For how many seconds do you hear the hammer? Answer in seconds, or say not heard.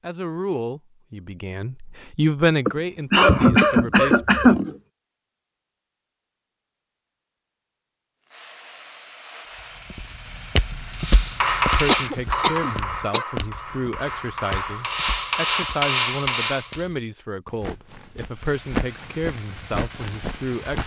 6 s.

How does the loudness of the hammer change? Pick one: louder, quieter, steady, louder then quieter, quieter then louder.
quieter then louder.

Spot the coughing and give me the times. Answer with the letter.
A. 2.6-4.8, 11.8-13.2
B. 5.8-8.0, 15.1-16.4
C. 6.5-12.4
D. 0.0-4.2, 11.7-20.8
A.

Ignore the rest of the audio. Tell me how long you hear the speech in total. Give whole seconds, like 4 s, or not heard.
13 s.